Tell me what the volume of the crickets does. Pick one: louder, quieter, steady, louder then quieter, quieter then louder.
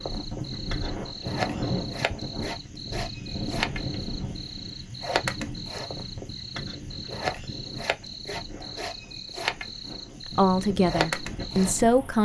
steady.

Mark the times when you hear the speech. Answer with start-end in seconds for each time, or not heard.
10.3-12.2.